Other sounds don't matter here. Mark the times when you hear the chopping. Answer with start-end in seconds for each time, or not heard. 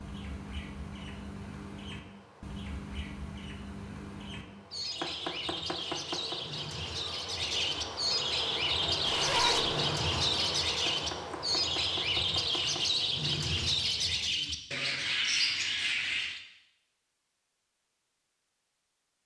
5.0-6.4, 10.8-12.8.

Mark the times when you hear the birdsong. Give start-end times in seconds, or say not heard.
0.0-16.4.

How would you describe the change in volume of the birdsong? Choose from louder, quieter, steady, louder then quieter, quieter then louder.
louder.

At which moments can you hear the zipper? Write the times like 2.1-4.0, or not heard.
9.0-9.8.